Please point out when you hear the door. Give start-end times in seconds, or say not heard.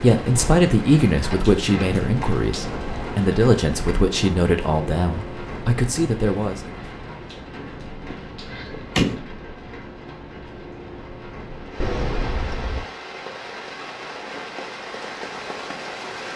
1.2-3.2, 8.1-9.3, 11.8-12.8.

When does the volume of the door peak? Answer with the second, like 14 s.
9 s.